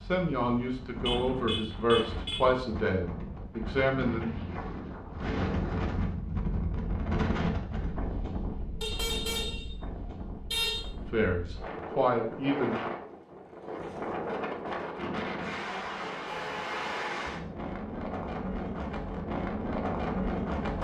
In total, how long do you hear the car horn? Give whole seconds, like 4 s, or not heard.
4 s.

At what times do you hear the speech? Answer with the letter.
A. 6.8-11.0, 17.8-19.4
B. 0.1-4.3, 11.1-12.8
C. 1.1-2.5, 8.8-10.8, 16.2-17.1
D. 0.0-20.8
B.